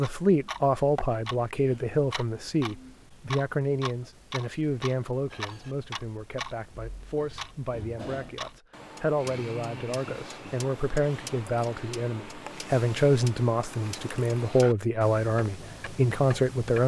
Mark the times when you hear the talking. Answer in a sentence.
You can hear the talking from 0.0 to 16.8 s.